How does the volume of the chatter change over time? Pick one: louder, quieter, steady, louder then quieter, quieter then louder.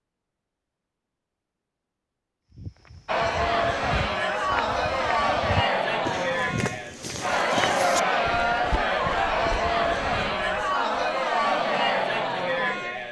steady.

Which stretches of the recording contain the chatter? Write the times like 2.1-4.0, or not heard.
3.0-13.0.